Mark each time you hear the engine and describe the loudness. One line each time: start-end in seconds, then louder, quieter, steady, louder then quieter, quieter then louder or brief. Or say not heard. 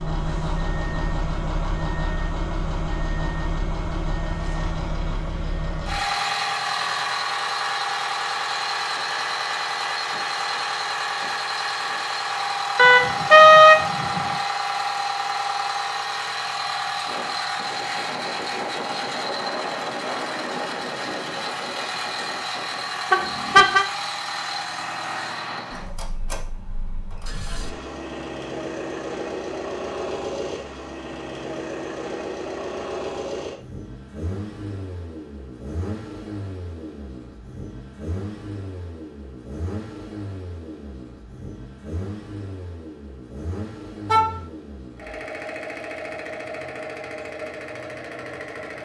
0.0-48.7 quieter.